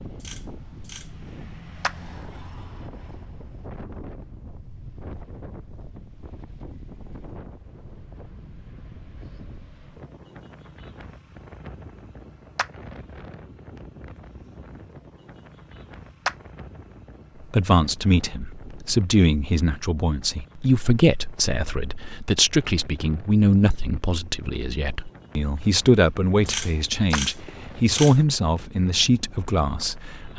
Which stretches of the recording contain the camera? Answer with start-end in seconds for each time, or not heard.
0.1-1.3, 26.4-28.2.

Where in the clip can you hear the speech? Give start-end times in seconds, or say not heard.
17.4-30.3.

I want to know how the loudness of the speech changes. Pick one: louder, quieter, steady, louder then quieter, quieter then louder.
steady.